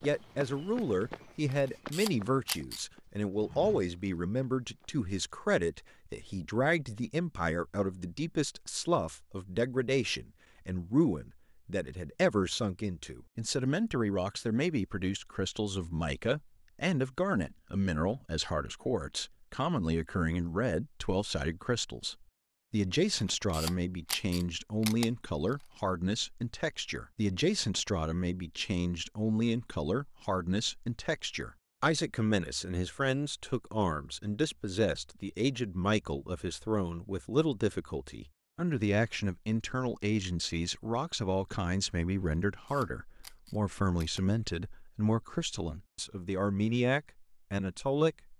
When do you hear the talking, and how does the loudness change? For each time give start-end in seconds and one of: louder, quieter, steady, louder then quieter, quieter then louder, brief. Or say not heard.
0.0-48.3 steady.